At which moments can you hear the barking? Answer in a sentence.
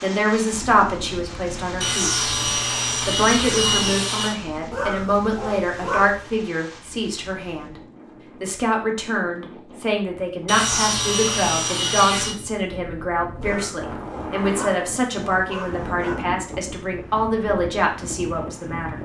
The barking can be heard from 4.7 to 6.2 s and from 13.4 to 16.3 s.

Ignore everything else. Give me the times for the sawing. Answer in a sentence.
You can hear the sawing from 1.8 to 4.3 s and from 10.4 to 12.3 s.